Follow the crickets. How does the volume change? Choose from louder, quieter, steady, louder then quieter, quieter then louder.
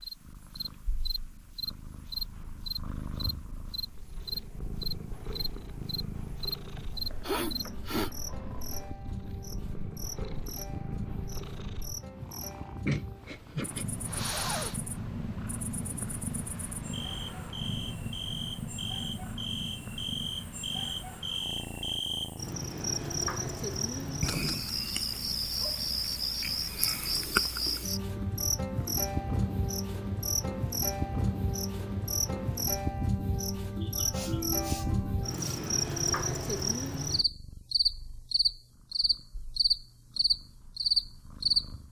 quieter then louder.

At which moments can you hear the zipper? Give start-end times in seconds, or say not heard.
not heard.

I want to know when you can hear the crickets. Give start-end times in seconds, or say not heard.
0.0-41.7.